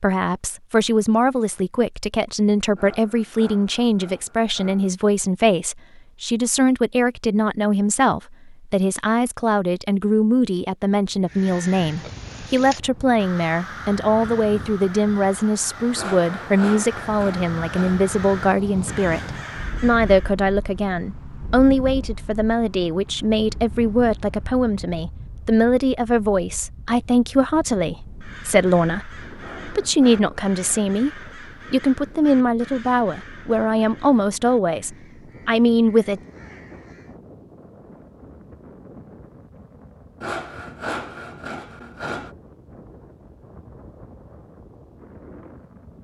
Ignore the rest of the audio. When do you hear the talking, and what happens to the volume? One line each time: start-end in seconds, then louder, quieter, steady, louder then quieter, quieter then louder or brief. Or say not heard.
0.0-36.2 steady.